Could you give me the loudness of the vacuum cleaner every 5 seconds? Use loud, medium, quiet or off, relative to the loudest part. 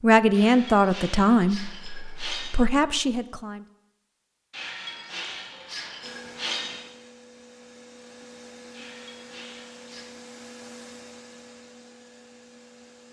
off, loud, loud.